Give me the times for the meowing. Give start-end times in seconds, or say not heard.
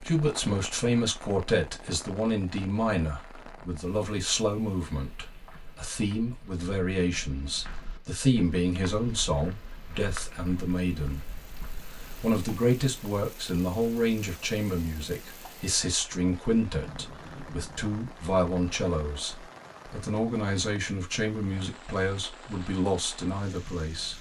not heard.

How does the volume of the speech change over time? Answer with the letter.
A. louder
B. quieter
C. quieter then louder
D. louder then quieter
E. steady
E.